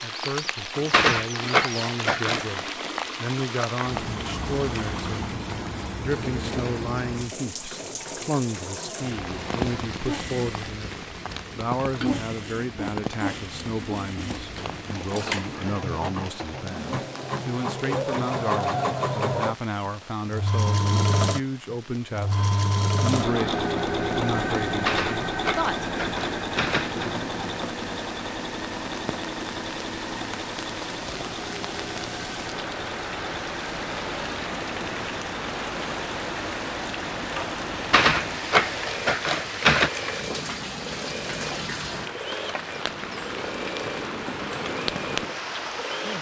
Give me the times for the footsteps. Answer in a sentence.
The footsteps can't be heard in this clip.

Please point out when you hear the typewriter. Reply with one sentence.
The typewriter can be heard from 0.9 to 2.7 s, from 24.9 to 27.1 s and from 37.9 to 39.9 s.